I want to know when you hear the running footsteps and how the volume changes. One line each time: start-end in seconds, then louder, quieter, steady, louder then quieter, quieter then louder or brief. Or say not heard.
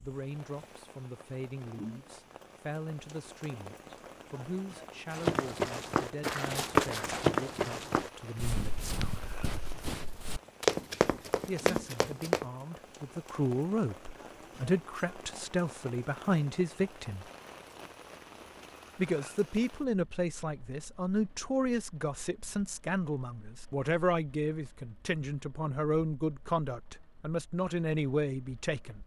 5.1-12.4 quieter then louder.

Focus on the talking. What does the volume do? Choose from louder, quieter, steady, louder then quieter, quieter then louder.
louder.